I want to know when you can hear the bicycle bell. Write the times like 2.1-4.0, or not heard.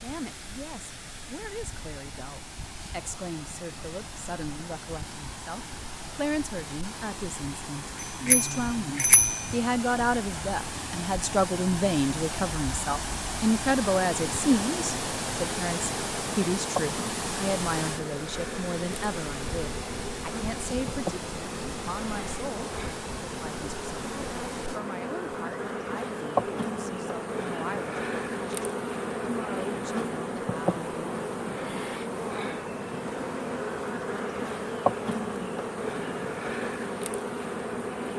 8.0-9.5.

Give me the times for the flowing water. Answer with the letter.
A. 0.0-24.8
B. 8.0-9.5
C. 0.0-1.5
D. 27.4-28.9
A.